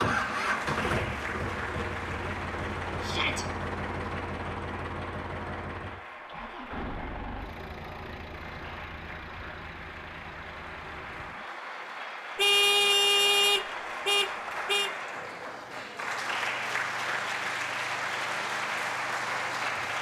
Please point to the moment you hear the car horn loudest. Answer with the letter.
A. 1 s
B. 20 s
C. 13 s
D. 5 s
C.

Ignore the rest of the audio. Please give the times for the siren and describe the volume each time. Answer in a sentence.
The siren can't be heard in this clip.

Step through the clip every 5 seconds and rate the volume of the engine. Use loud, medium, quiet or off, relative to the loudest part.
loud, medium, quiet, quiet.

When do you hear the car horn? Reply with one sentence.
You can hear the car horn from 12.3 to 14.9 s.